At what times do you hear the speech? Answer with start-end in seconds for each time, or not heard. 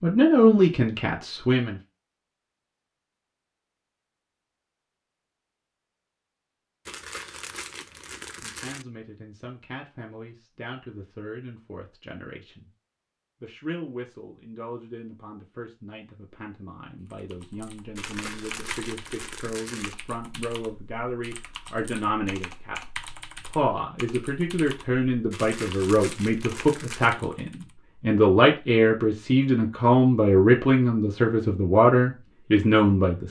0.0-1.8, 8.2-12.7, 13.4-22.8, 23.4-33.2.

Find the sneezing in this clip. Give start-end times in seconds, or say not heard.
not heard.